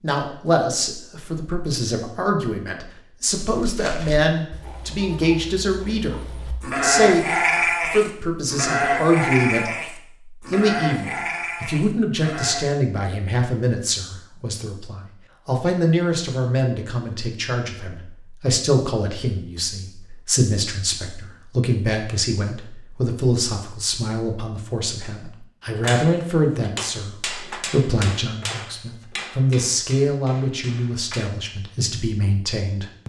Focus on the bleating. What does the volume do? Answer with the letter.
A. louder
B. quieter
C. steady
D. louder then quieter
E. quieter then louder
D.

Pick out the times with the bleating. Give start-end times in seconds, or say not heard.
3.2-12.7.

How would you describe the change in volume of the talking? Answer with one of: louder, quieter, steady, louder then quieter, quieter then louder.
steady.